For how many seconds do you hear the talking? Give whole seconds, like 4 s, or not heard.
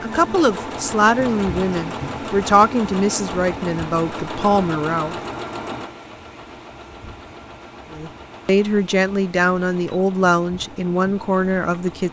9 s.